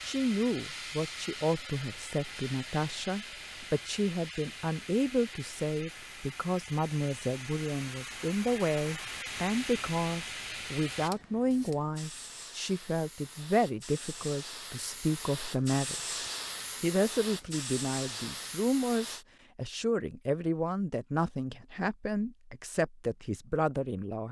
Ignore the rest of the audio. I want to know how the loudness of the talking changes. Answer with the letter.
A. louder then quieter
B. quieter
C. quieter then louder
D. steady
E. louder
D.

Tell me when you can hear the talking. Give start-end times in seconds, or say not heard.
0.0-24.2.